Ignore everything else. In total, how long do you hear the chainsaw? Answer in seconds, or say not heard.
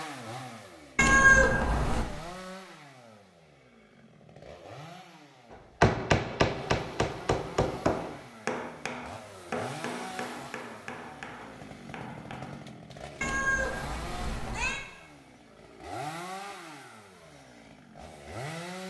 19 s.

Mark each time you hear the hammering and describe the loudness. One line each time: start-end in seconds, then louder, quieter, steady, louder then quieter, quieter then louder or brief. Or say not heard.
5.8-12.6 quieter.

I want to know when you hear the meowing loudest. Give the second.
1 s.